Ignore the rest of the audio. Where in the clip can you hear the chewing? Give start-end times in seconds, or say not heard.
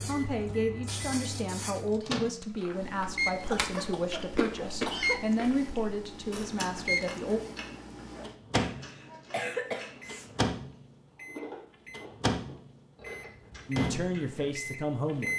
2.4-14.7.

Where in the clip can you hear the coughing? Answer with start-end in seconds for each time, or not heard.
3.4-5.2, 8.5-10.3.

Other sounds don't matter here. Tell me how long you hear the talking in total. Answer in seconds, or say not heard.
9 s.